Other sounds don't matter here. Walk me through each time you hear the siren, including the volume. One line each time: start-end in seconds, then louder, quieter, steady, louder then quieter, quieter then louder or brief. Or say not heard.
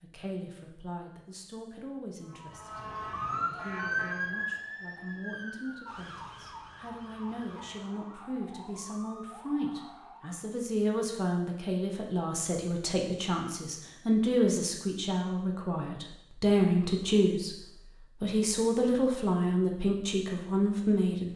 2.2-10.6 quieter.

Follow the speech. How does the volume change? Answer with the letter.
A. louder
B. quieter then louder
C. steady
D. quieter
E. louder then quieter
A.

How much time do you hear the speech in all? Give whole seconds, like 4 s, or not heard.
21 s.